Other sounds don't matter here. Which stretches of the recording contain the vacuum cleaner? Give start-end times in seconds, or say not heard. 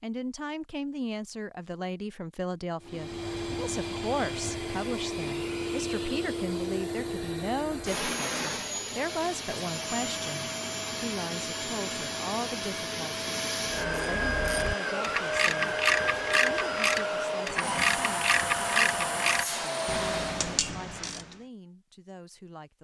2.8-20.6.